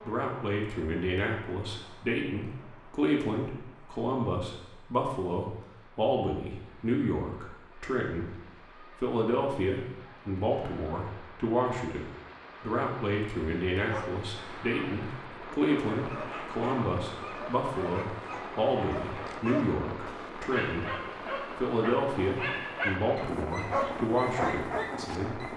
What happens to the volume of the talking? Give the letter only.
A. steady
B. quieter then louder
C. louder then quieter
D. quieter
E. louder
A.